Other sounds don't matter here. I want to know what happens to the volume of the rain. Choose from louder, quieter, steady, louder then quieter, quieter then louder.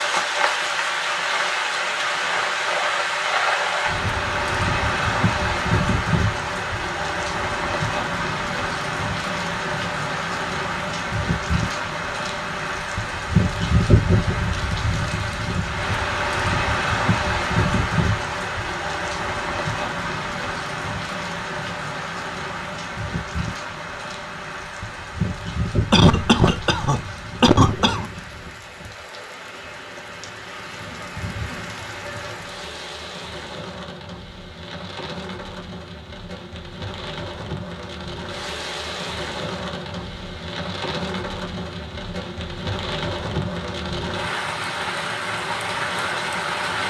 quieter then louder.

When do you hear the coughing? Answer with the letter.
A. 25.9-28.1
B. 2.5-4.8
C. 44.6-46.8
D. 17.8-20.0
A.